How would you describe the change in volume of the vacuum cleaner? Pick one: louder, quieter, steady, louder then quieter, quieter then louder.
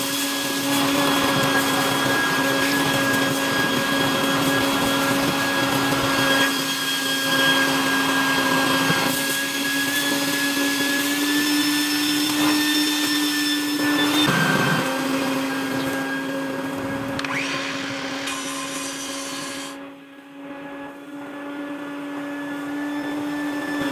quieter.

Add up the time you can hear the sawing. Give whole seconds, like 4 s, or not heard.
3 s.